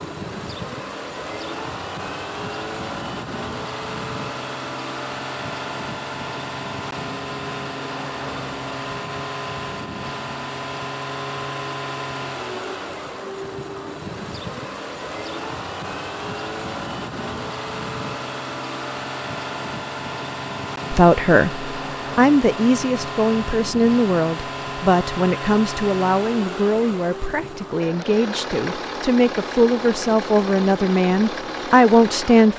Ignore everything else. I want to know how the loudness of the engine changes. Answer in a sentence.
The volume of the engine stays about the same.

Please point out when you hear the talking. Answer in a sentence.
You can hear the talking from 20.9 to 32.5 s.